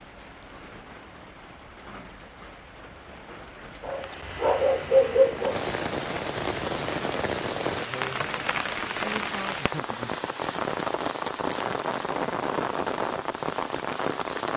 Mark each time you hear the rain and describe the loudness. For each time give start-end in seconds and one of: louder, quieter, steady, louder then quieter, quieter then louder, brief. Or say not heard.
0.0-14.5 louder.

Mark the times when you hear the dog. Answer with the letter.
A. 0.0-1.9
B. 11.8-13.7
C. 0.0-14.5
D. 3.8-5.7
D.